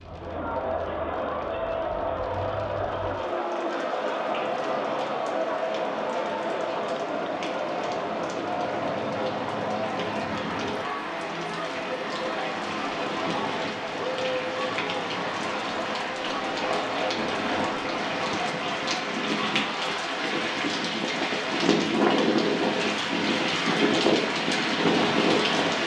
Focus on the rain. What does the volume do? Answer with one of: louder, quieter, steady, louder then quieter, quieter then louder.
louder.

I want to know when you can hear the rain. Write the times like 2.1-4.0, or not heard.
0.0-25.8.